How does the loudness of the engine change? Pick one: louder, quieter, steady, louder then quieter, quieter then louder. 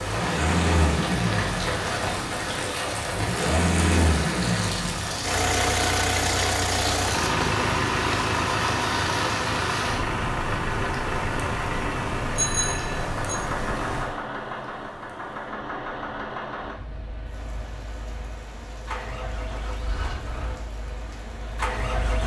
quieter.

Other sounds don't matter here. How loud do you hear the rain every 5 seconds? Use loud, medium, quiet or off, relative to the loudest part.
loud, loud, loud, quiet, quiet.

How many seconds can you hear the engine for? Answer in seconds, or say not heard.
22 s.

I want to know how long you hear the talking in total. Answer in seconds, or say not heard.
not heard.